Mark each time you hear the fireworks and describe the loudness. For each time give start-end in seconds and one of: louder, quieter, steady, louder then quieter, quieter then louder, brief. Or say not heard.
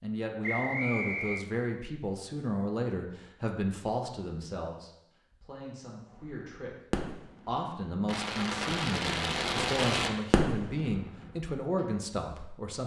6.2-11.8 louder then quieter.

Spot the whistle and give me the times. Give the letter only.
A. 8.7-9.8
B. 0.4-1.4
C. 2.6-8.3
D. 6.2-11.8
B.